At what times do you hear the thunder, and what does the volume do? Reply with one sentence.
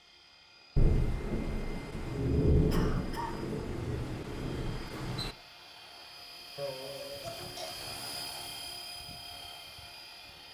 You can hear the thunder from 0.8 to 5.3 s, getting louder then quieter.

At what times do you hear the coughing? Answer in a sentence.
You can hear the coughing from 2.7 to 3.5 s and from 6.5 to 7.7 s.